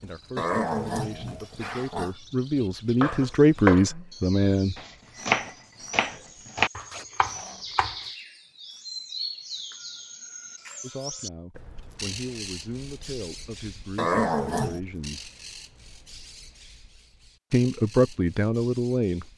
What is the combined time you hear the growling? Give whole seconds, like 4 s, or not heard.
3 s.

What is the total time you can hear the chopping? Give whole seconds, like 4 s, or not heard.
5 s.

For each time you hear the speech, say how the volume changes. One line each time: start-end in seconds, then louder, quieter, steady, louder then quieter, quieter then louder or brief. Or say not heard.
0.0-4.8 louder
10.8-15.3 louder
17.5-19.2 brief.